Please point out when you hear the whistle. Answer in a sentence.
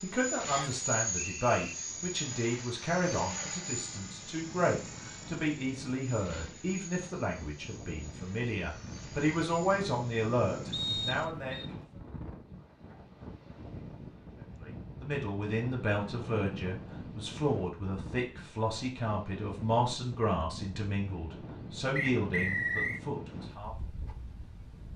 You can hear the whistle from 0.5 to 1.6 s, from 10.7 to 11.7 s and from 21.9 to 23.0 s.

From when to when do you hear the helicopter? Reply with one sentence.
You can hear the helicopter from 0.0 to 11.3 s.